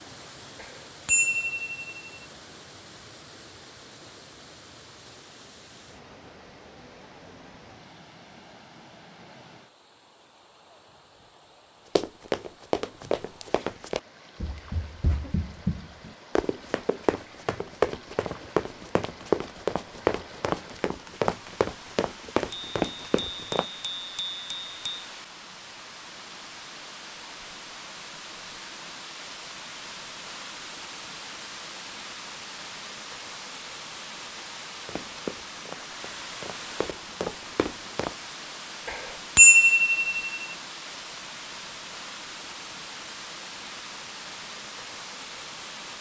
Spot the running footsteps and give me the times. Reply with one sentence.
You can hear the running footsteps from 11.9 to 23.6 s and from 34.9 to 38.1 s.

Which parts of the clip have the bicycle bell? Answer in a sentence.
The bicycle bell can be heard from 0.6 to 2.1 s, from 22.5 to 25.1 s and from 38.9 to 40.5 s.